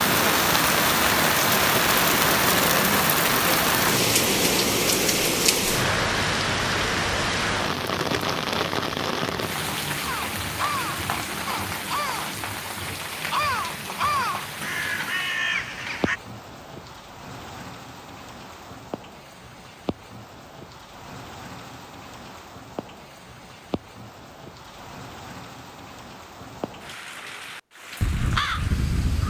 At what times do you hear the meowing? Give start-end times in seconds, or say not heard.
not heard.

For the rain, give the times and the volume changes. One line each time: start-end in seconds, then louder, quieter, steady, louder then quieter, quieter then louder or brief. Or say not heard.
0.0-29.2 quieter.